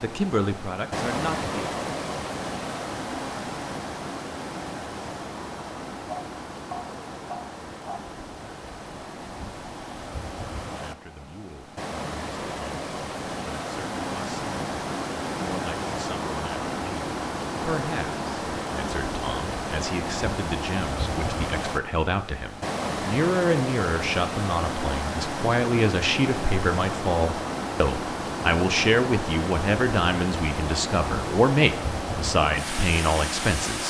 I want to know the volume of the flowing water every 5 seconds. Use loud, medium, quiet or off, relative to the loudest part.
loud, medium, loud, loud, loud, loud, loud.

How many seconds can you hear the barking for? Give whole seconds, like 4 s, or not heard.
2 s.